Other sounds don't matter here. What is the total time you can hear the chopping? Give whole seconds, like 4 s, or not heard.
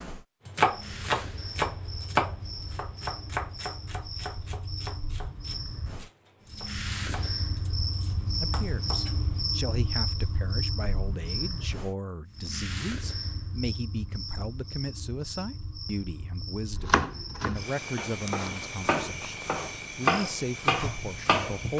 14 s.